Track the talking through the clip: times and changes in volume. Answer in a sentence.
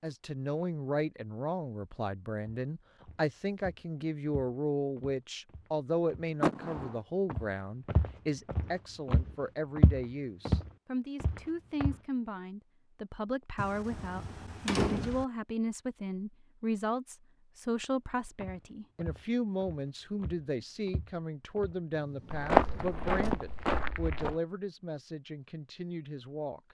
You can hear the talking from 0.0 to 26.6 s, at a steady volume.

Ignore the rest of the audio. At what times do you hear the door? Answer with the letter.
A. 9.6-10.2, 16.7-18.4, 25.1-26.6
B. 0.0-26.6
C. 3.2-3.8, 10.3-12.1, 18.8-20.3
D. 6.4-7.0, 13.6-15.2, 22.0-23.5
D.